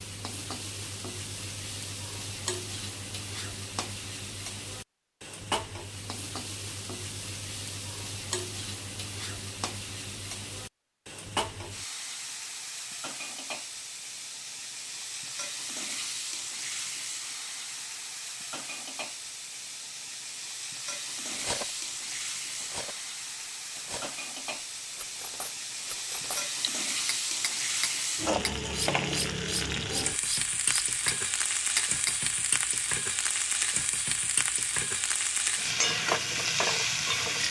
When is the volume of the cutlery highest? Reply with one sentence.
The volume of the cutlery peaks at 32 seconds.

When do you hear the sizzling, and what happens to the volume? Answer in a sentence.
The sizzling can be heard from 0.0 to 37.4 s, getting louder.